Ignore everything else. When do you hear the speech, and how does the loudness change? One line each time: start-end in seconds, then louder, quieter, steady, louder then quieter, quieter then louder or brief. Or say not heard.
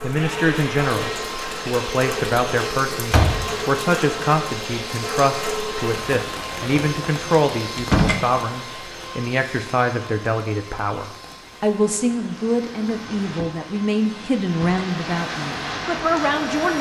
0.0-16.7 steady.